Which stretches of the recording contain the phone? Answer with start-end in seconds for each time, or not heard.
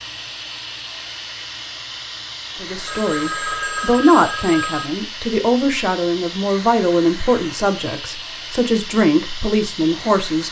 2.9-4.9.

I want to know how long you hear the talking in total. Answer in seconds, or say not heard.
8 s.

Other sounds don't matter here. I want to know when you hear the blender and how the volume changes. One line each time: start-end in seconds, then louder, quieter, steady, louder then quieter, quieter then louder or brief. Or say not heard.
not heard.